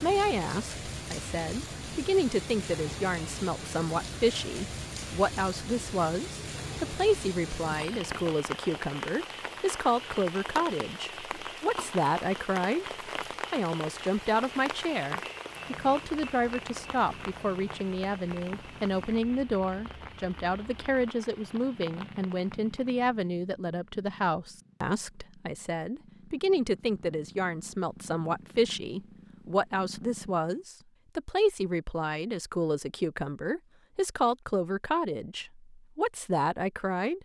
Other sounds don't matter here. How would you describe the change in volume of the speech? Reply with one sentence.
The loudness of the speech stays about the same.